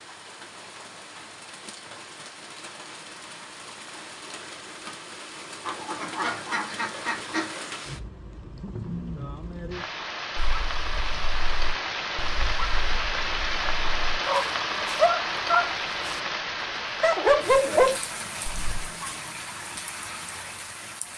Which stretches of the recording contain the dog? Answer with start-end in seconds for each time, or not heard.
10.3-16.1, 17.0-18.9.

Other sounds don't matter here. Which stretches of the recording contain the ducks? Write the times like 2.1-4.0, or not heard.
5.6-7.5.